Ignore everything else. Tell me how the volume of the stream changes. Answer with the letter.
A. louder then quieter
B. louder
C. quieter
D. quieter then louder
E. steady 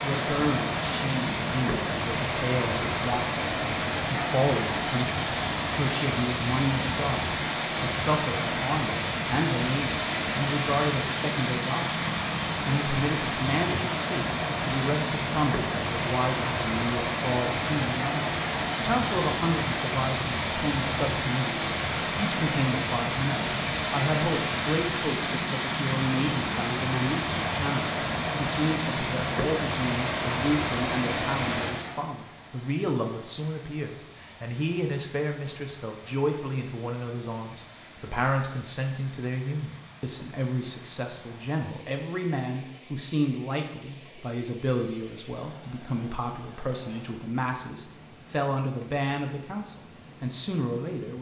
C.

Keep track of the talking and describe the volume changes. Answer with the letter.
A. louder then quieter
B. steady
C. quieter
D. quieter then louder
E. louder
B.